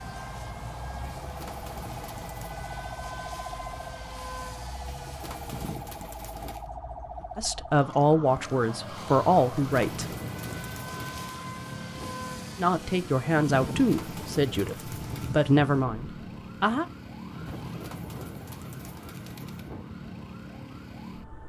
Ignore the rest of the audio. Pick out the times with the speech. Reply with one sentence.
You can hear the speech from 7.3 to 10.2 s and from 12.6 to 16.9 s.